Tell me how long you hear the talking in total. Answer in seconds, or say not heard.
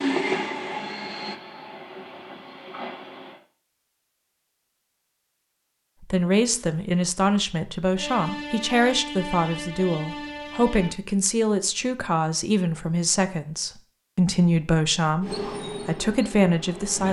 11 s.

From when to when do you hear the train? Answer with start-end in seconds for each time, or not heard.
0.0-3.4, 8.0-10.9, 15.2-17.0.